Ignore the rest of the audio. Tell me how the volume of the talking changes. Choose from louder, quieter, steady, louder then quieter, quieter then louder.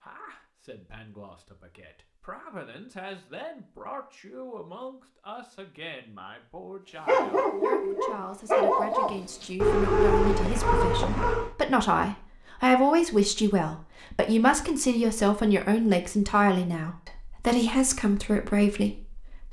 louder.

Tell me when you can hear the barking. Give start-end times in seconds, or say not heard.
7.0-11.5.